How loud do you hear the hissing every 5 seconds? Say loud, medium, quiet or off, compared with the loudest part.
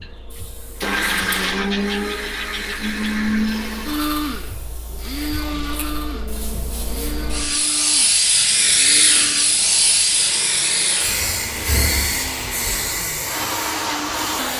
quiet, loud, loud.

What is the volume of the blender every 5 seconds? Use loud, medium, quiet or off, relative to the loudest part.
loud, medium, medium.